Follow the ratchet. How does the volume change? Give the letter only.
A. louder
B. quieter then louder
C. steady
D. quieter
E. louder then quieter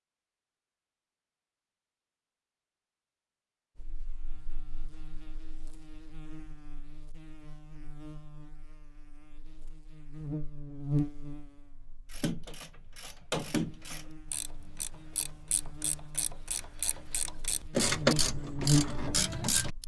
B.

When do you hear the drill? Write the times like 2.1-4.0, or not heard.
not heard.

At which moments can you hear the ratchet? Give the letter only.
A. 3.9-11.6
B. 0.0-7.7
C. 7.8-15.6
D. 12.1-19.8
D.